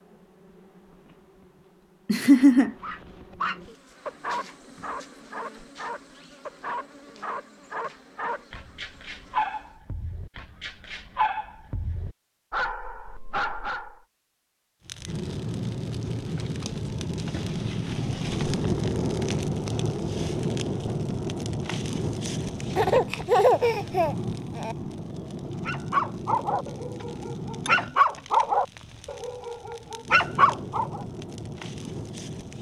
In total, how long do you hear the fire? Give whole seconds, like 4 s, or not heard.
18 s.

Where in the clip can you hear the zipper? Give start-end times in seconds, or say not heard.
not heard.